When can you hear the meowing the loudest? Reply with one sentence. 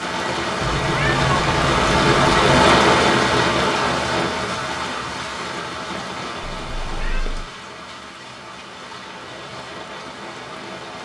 The loudest moment of the meowing is at 1 second.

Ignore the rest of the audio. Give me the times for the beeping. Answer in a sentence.
You can't hear the beeping here.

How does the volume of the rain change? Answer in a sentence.
The volume of the rain goes down.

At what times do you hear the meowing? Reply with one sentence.
The meowing can be heard from 0.6 to 2.5 s and from 6.4 to 7.5 s.